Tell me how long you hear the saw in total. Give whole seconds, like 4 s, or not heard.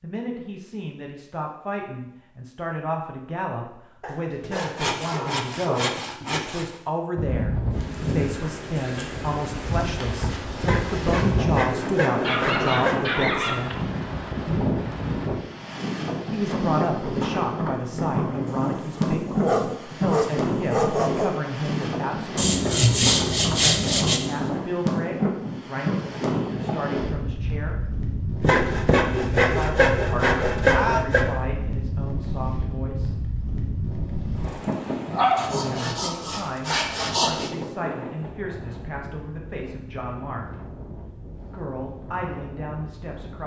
12 s.